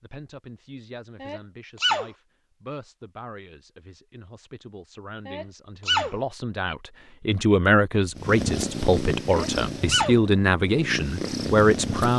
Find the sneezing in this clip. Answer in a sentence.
You can hear the sneezing from 1.2 to 2.1 s, from 5.2 to 6.2 s and from 9.2 to 10.2 s.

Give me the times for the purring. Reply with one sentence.
The purring can be heard from 8.2 to 12.1 s.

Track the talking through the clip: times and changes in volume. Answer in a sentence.
The talking can be heard from 0.0 to 12.1 s, getting louder.